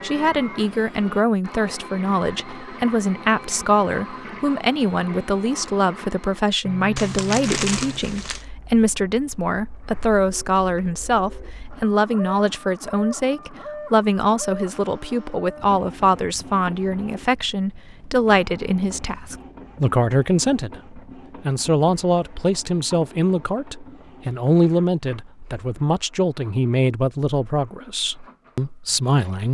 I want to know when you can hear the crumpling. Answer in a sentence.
You can hear the crumpling from 7.0 to 8.4 s.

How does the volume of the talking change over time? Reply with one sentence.
The volume of the talking stays about the same.